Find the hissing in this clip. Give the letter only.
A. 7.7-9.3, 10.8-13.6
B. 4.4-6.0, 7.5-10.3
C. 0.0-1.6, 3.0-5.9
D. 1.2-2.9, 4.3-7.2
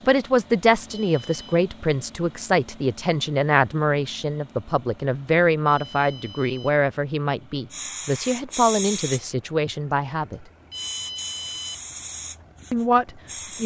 A.